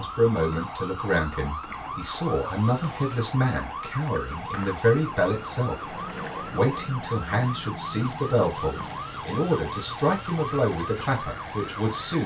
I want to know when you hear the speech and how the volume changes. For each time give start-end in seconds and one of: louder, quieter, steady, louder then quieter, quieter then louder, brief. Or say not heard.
0.0-12.2 steady.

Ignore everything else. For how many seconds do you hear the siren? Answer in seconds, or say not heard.
12 s.